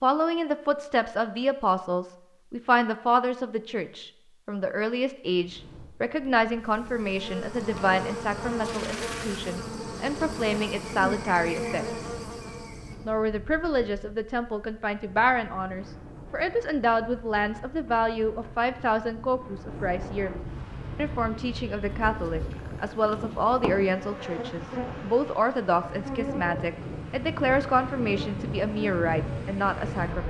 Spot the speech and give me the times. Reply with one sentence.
You can hear the speech from 0.0 to 12.1 s and from 13.1 to 30.2 s.